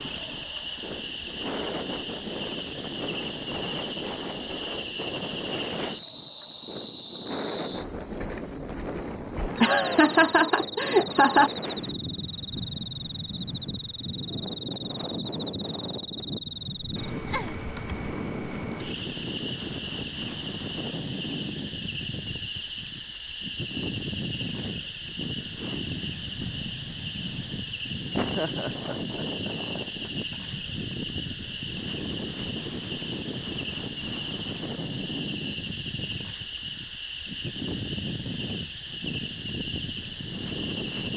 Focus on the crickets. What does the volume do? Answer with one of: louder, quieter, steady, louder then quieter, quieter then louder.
steady.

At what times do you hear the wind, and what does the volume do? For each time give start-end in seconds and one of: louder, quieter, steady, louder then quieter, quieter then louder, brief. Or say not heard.
0.0-41.1 steady.